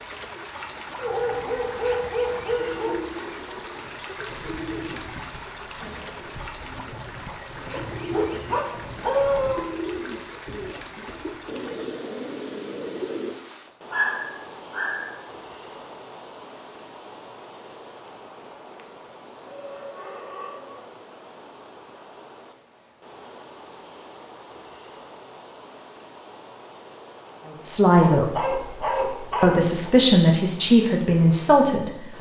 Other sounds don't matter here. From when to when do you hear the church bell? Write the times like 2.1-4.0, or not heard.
not heard.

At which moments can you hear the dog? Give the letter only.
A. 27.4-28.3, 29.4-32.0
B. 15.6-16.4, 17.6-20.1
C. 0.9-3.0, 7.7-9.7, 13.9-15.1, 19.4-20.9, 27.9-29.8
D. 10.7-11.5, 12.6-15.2
C.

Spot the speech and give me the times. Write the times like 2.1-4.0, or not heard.
27.4-28.3, 29.4-32.0.